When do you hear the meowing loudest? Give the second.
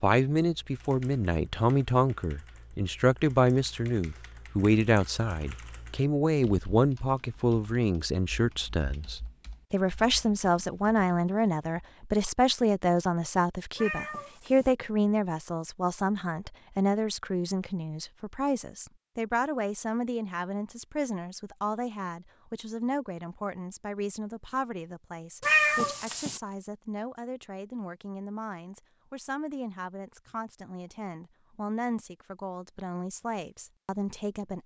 26 s.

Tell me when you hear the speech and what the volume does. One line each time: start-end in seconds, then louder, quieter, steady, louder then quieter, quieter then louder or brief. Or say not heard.
0.0-34.6 quieter.